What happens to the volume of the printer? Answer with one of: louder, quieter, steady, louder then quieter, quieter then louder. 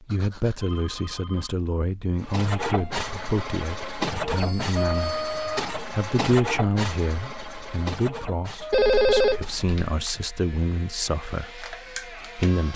quieter.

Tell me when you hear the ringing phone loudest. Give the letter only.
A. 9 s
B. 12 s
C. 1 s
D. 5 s
A.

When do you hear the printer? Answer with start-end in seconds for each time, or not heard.
2.1-12.7.